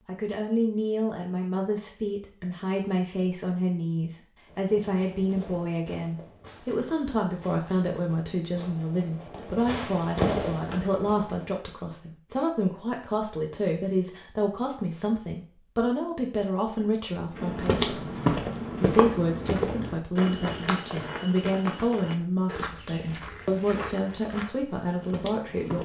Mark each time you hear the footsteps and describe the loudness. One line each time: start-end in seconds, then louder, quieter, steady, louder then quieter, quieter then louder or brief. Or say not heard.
17.4-25.8 quieter.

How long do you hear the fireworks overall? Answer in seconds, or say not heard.
7 s.